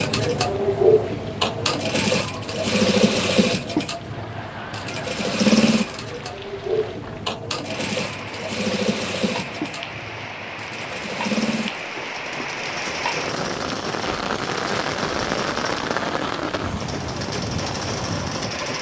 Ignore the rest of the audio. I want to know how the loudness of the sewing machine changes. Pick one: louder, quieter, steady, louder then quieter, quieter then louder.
quieter.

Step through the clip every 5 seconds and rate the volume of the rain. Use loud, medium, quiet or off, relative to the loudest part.
quiet, medium, loud, loud.